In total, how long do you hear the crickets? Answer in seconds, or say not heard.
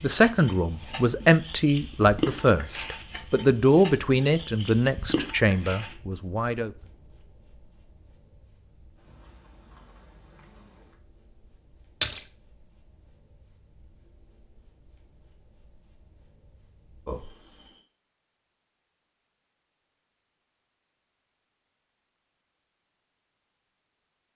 18 s.